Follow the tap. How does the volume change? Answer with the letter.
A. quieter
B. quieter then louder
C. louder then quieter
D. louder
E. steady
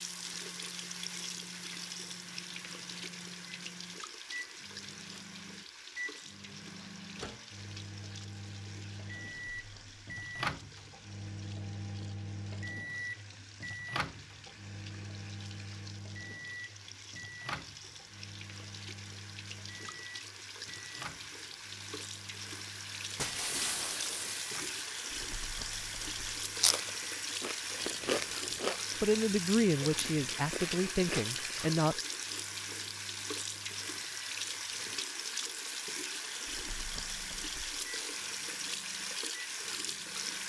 B.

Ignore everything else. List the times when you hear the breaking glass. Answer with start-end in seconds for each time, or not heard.
23.1-24.6.